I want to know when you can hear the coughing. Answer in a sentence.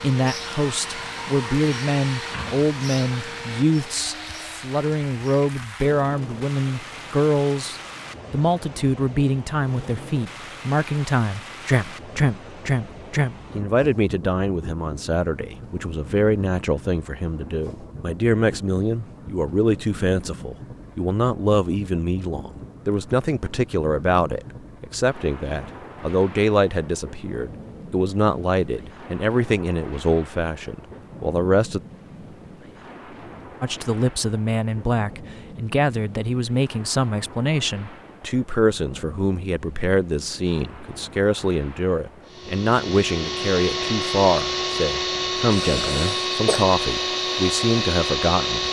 The coughing can be heard from 45.5 to 46.6 s.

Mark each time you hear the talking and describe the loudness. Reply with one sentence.
You can hear the talking from 0.0 to 31.8 s, at a steady volume; and from 33.6 to 48.6 s, at a steady volume.